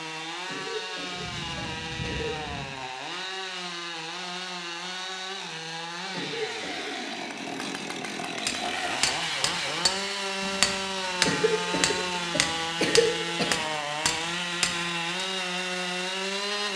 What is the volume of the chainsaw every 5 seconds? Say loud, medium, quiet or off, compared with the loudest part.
medium, loud, loud, loud.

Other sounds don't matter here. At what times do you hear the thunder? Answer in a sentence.
You can hear the thunder from 1.1 to 2.6 s.